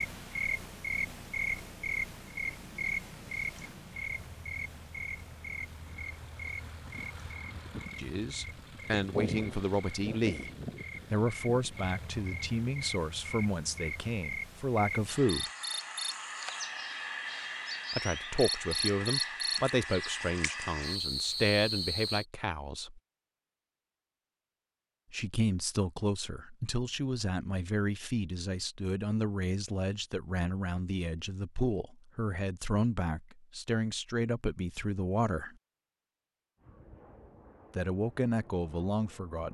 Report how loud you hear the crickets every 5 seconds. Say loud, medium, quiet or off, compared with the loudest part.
loud, medium, medium, loud, loud, off, off, off.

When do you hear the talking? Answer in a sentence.
You can hear the talking from 8.0 to 10.5 s, from 11.1 to 15.5 s, from 17.9 to 23.0 s, from 25.1 to 35.5 s and from 37.8 to 39.5 s.